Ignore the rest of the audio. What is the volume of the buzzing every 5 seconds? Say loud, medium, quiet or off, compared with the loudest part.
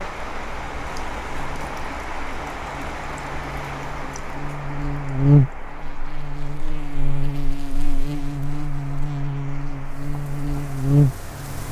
quiet, loud, loud.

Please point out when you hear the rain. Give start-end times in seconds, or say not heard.
0.0-11.6.